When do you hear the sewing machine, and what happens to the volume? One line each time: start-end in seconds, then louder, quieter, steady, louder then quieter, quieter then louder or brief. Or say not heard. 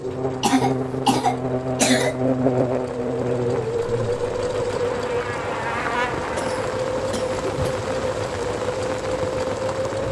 0.0-10.0 louder.